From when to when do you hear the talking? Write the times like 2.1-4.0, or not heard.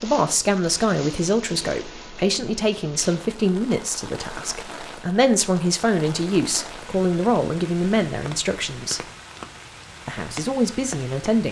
0.0-9.1, 10.1-11.4.